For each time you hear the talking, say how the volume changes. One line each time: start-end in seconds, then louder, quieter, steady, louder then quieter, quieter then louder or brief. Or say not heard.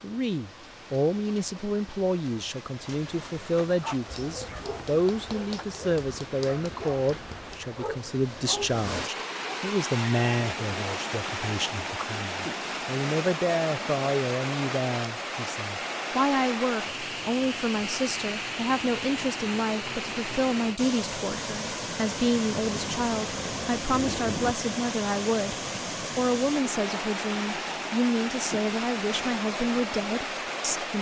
0.0-25.6 steady
26.1-30.9 steady.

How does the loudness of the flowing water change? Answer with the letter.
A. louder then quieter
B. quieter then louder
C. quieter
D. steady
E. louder
E.